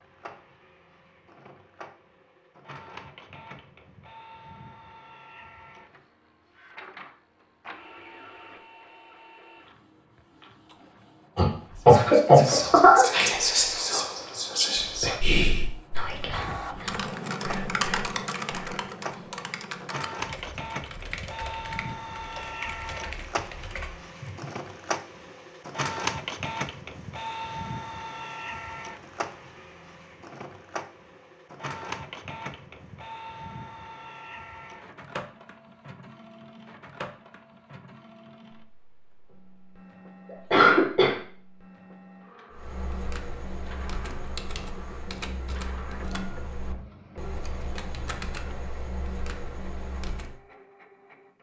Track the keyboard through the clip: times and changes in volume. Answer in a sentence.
The keyboard can be heard from 16.7 to 24.6 s, getting quieter; and from 42.5 to 50.4 s, at a steady volume.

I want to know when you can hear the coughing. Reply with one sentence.
You can hear the coughing from 11.3 to 13.1 s and from 40.5 to 41.1 s.